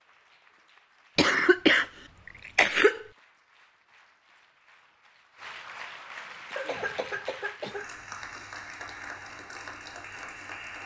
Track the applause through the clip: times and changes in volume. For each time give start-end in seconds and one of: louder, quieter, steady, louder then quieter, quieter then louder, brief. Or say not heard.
0.0-10.8 louder.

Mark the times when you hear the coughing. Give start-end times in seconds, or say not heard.
1.1-3.0, 6.5-7.9.